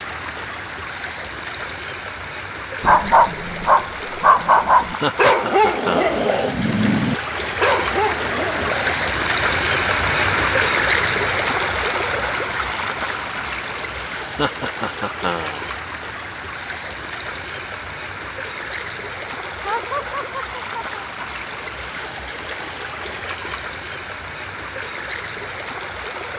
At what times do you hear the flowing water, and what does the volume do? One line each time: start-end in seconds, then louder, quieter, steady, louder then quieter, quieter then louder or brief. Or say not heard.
0.0-26.3 louder then quieter.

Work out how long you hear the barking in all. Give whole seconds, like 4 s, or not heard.
6 s.